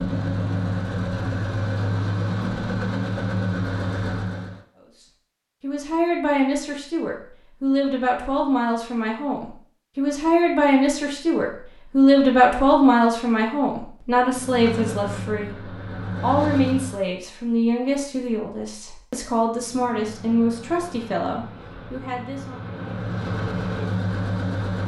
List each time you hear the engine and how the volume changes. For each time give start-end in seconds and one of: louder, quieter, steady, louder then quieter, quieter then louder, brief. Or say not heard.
0.0-4.7 steady
14.3-17.1 brief
19.5-24.8 louder.